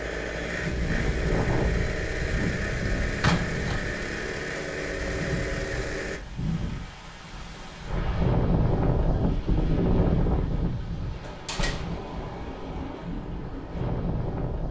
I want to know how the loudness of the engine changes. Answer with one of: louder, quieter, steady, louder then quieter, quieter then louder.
steady.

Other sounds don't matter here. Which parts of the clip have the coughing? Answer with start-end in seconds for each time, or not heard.
not heard.